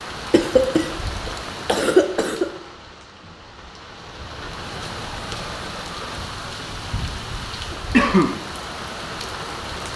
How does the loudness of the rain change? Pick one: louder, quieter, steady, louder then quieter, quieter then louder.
quieter then louder.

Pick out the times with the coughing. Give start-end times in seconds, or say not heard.
0.3-2.5, 7.9-8.3.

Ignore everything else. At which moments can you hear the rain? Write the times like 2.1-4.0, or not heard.
0.0-9.9.